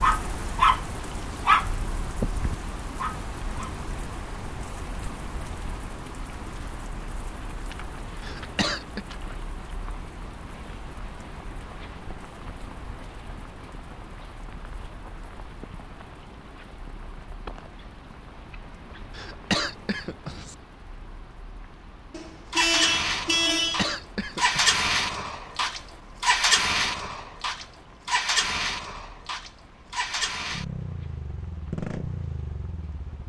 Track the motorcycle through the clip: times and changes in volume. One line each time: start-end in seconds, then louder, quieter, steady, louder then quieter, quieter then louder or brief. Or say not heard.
22.5-33.2 quieter.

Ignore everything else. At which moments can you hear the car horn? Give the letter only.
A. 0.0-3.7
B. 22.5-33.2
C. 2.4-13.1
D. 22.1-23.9
D.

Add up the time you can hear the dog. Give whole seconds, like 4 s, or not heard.
4 s.